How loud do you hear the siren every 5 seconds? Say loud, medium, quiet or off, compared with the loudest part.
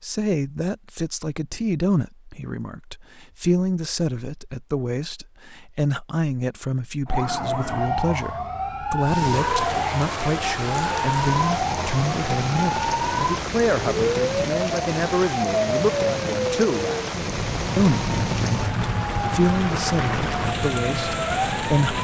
off, loud, loud, loud, loud.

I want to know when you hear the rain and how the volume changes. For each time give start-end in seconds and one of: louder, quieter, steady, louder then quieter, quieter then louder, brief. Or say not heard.
9.0-21.9 steady.